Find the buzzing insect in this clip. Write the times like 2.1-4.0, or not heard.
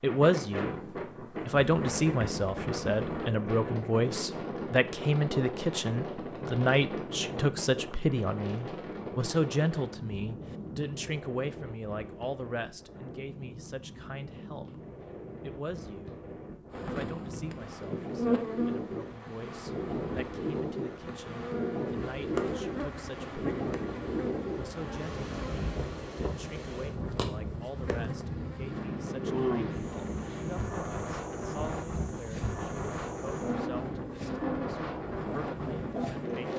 1.5-3.4, 16.7-36.5.